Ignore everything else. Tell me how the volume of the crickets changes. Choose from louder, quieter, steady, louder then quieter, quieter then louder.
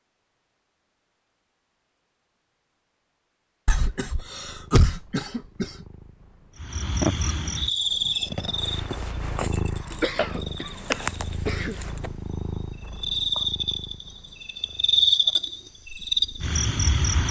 quieter then louder.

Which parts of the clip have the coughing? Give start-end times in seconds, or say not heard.
3.6-5.8, 10.0-11.8.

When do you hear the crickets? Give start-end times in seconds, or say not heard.
6.6-17.2.